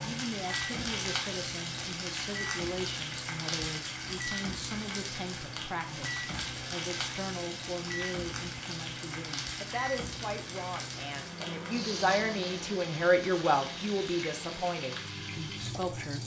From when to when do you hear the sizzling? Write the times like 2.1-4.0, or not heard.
0.0-16.2.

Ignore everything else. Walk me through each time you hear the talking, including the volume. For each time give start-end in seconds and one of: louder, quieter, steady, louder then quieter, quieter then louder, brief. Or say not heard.
0.0-16.2 louder.